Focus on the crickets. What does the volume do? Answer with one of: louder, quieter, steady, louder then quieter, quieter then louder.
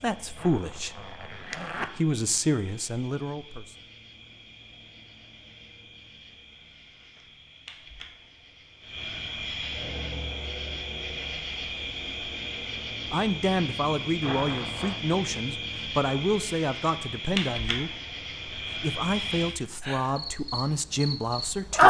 louder.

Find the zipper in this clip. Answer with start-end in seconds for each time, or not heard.
0.3-1.9, 14.2-15.0.